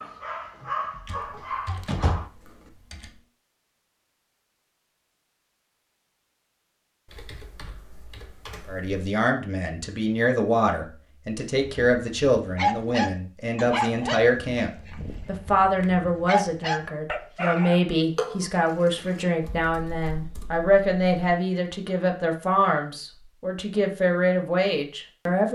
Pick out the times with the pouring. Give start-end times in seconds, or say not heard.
18.1-19.2.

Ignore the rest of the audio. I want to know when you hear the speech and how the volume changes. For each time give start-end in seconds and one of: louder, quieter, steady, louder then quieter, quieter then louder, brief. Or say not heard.
8.7-25.5 steady.